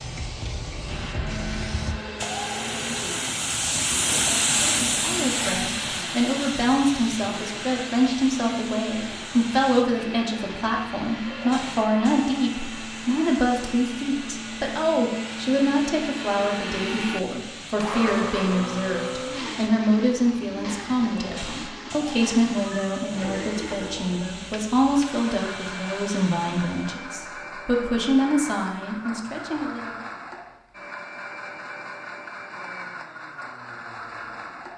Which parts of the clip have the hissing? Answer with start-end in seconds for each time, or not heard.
0.0-27.0.